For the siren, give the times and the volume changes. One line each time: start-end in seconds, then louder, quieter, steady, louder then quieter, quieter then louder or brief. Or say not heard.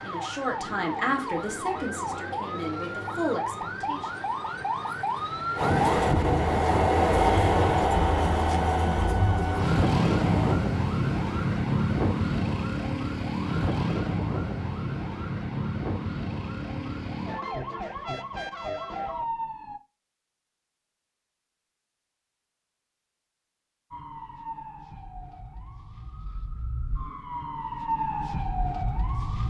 0.0-19.8 louder then quieter
23.9-29.4 quieter then louder.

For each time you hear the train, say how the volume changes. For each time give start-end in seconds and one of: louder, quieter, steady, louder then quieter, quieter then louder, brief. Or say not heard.
5.5-10.6 quieter.